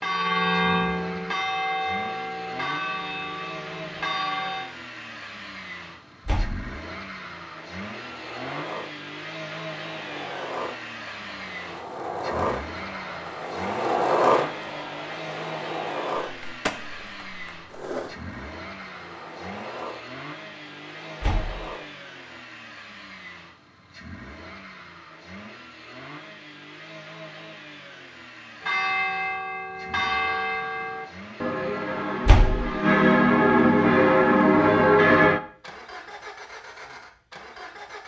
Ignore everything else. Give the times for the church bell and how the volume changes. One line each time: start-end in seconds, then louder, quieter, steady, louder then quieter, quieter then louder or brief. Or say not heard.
0.0-4.7 quieter
28.6-35.4 louder.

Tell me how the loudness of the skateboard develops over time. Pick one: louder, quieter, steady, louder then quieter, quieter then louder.
louder then quieter.